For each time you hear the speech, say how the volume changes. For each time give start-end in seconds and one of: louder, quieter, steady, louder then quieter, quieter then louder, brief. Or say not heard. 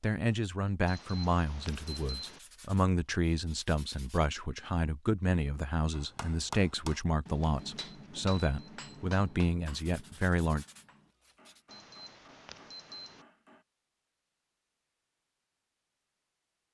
0.0-10.7 steady.